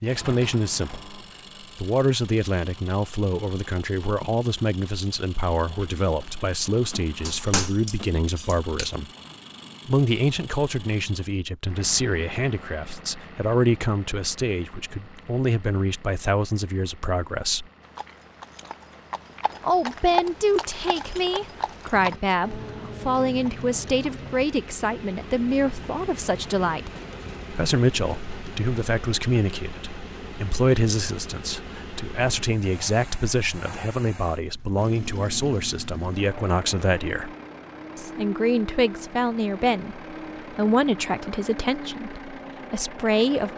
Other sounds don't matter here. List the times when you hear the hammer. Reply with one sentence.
You can hear the hammer from 7.2 to 8.9 s.